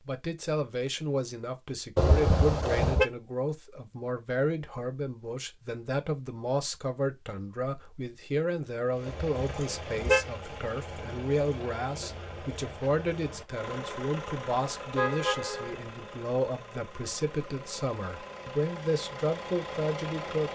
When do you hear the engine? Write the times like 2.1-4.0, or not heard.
8.8-20.5.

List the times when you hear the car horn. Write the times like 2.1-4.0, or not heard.
1.9-3.0, 9.1-10.2, 14.9-15.8.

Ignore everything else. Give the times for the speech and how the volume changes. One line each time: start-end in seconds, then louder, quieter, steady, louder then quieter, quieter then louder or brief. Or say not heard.
0.0-20.5 steady.